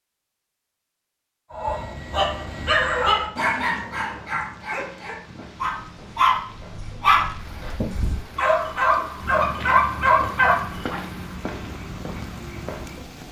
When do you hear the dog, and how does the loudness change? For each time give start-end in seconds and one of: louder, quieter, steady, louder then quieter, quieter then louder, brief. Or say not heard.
1.5-11.0 quieter then louder.